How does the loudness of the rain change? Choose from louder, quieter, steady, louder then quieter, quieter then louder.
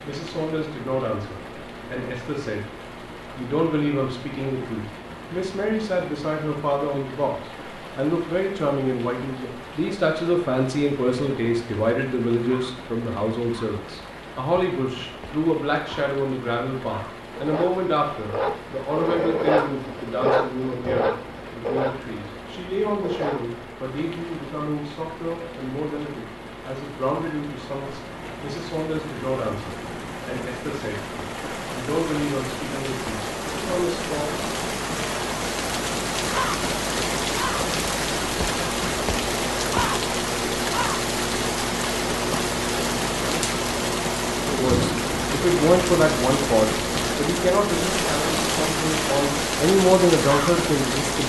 louder.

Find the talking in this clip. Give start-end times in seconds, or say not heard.
0.0-2.6, 3.4-31.0, 31.7-34.5, 44.5-51.2.